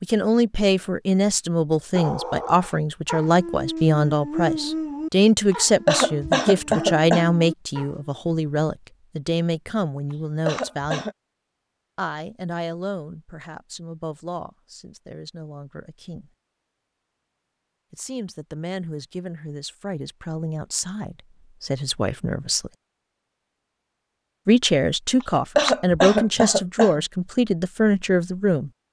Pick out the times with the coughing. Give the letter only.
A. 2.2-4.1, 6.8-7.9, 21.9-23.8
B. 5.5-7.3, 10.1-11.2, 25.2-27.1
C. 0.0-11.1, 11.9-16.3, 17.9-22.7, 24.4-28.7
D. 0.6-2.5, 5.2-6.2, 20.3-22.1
B.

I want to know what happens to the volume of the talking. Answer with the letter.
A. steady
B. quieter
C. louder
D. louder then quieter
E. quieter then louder
E.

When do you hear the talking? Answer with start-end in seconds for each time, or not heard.
0.0-11.1, 11.9-16.3, 17.9-22.7, 24.4-28.7.